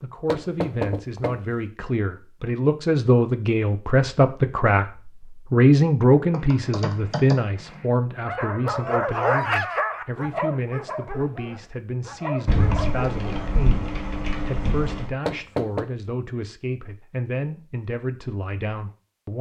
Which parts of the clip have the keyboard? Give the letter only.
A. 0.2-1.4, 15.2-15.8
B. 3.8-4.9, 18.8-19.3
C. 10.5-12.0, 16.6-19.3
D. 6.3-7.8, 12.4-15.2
D.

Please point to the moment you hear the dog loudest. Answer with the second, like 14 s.
9 s.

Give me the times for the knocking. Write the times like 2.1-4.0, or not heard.
0.2-1.4, 15.2-15.8.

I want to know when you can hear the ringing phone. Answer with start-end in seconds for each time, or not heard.
not heard.